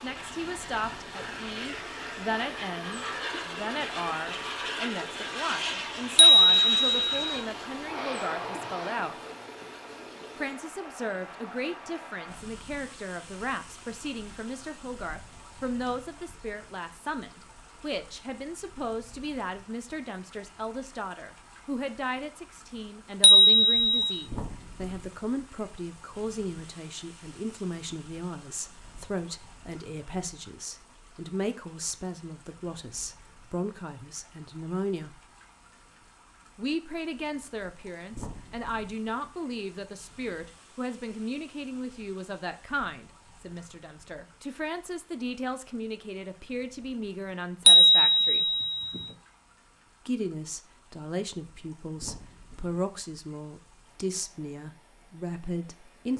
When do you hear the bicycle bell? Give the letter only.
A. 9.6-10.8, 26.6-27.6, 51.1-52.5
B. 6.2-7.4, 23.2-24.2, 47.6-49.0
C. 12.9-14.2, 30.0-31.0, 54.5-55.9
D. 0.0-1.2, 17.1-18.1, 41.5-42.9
B.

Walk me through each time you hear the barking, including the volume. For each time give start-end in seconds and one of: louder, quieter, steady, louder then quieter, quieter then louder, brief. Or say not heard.
not heard.